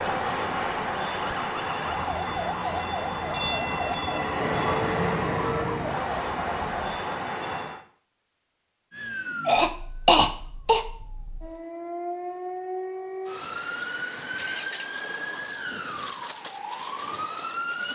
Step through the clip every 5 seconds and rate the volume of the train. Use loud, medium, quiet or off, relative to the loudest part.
loud, loud, off, off.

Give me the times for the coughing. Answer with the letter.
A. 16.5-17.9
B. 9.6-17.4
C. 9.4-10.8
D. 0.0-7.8
C.